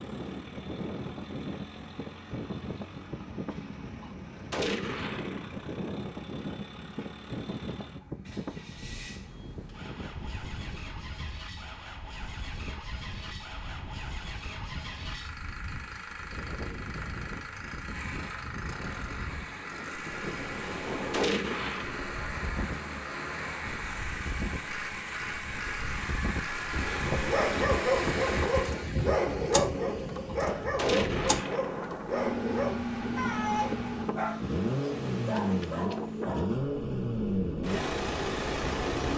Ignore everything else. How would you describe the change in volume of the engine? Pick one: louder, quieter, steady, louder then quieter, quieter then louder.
louder.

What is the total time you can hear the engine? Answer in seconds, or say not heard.
39 s.